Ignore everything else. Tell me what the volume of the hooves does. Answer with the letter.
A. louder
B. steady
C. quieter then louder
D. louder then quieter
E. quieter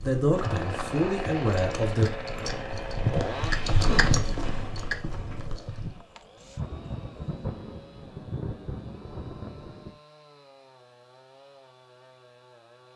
D.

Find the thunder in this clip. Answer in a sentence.
The thunder can be heard from 6.0 to 9.9 s.